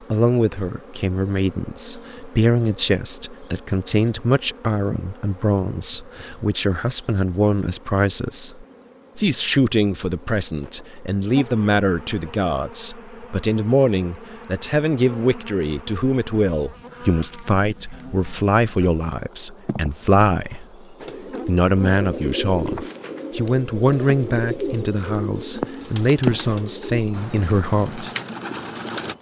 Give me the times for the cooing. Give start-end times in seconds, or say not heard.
20.9-29.1.